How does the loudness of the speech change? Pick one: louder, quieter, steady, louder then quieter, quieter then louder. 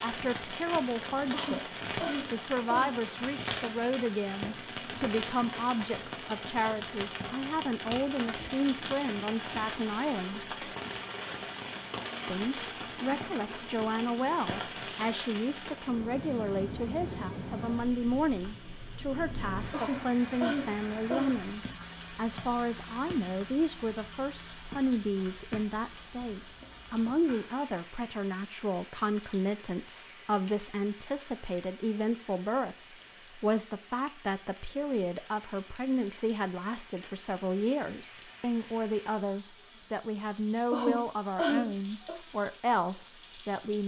steady.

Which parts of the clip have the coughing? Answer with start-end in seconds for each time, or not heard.
1.3-3.0, 19.7-21.4, 40.7-42.1.